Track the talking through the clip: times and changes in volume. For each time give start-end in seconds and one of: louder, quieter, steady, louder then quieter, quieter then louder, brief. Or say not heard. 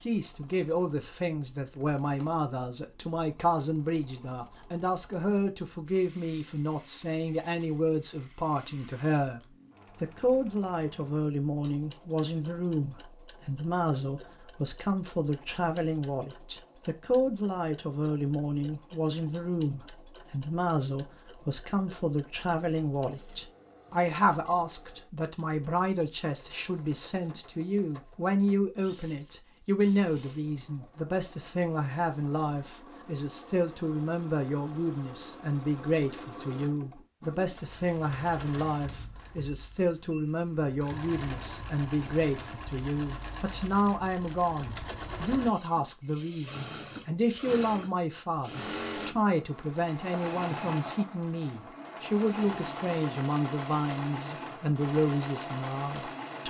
0.0-9.4 steady
10.0-56.4 steady.